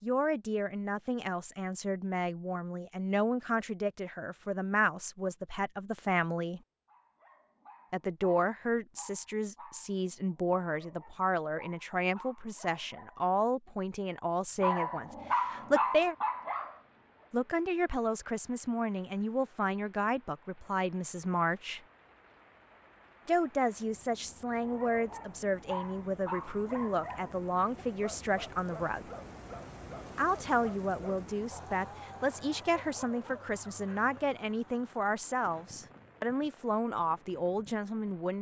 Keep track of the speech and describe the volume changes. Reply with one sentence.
The loudness of the speech stays about the same.